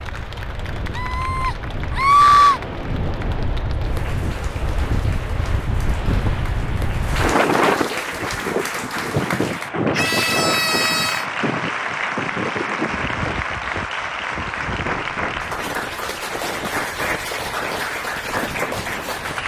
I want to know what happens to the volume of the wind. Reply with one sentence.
The volume of the wind goes up, then down.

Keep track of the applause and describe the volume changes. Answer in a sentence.
The loudness of the applause goes up.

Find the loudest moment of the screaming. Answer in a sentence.
The loudest moment of the screaming is at 2 seconds.